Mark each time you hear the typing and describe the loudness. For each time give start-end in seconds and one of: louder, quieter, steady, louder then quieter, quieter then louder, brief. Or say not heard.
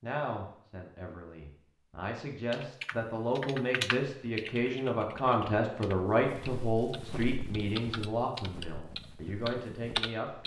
2.5-10.4 quieter then louder.